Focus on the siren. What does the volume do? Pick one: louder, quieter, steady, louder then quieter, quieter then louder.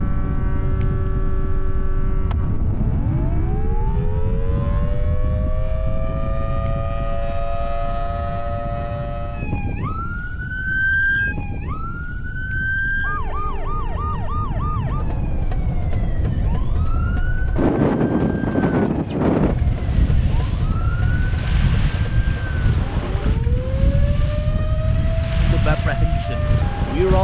louder then quieter.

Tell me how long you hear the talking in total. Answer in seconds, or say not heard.
2 s.